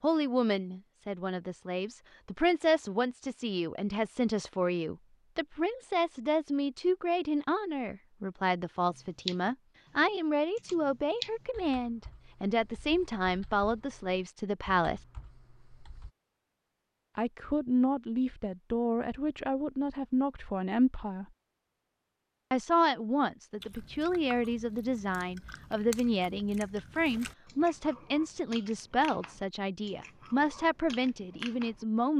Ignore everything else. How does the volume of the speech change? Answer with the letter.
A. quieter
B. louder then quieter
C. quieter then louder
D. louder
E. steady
E.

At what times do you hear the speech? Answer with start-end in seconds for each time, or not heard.
0.0-15.0, 17.1-21.2, 22.5-32.1.